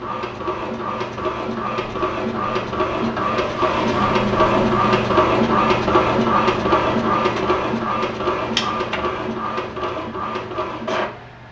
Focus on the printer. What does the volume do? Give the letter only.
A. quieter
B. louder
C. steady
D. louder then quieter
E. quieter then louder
D.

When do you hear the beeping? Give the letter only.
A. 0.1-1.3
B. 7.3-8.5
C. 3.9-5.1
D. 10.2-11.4
C.